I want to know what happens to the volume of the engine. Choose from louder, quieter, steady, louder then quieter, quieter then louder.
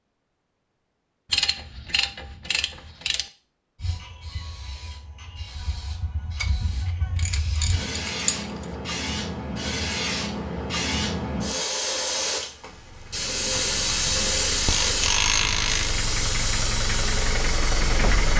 louder.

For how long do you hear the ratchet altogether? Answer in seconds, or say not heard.
7 s.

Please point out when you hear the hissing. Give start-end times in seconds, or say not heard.
3.8-18.3.